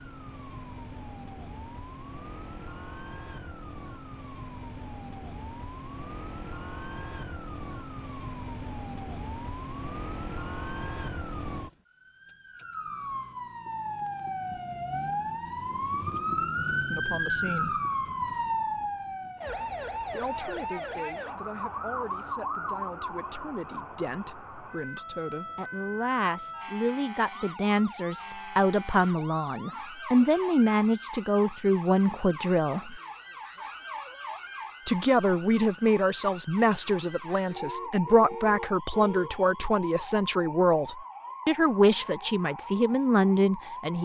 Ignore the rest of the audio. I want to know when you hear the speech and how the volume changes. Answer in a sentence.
The speech can be heard briefly from 16.9 to 17.8 s; from 20.1 to 33.0 s, getting louder; and from 34.9 to 43.9 s, at a steady volume.